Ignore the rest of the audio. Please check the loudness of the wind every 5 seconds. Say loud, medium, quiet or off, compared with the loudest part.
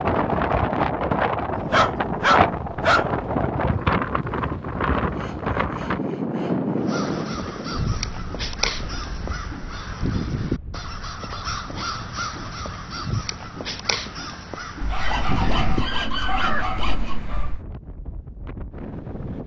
loud, medium, quiet, quiet.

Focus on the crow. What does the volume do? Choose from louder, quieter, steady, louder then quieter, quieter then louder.
steady.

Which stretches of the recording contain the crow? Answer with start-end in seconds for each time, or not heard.
6.8-16.8.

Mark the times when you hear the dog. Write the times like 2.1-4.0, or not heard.
1.6-3.0, 14.8-17.6.